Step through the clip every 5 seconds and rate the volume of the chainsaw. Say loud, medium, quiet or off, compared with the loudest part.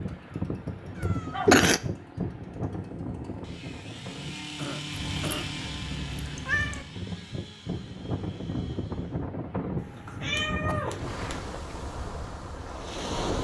loud, loud, off.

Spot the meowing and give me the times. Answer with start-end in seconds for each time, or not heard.
0.9-1.6, 4.9-6.8, 9.8-11.4.